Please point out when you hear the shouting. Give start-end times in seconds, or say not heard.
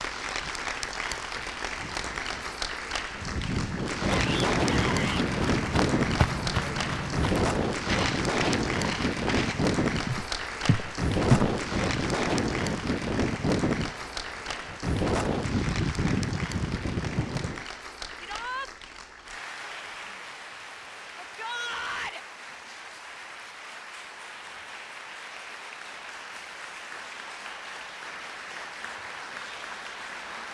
4.1-5.2, 18.2-18.7, 21.1-22.2.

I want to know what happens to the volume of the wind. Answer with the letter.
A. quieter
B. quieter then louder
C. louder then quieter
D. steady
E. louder
D.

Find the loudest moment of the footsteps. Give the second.
11 s.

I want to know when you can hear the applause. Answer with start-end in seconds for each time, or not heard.
0.0-30.5.